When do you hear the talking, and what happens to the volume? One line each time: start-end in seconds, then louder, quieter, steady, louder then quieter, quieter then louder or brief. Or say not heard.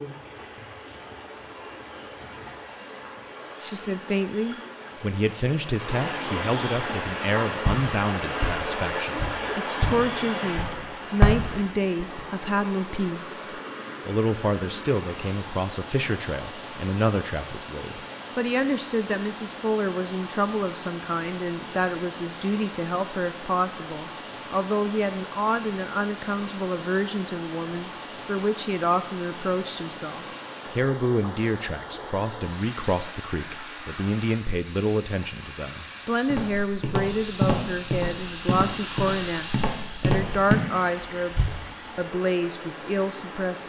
3.6-43.6 steady.